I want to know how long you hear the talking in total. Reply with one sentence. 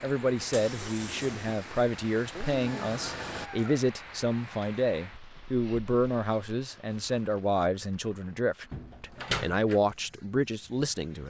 The talking can be heard for 11 seconds in total.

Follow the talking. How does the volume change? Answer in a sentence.
The loudness of the talking stays about the same.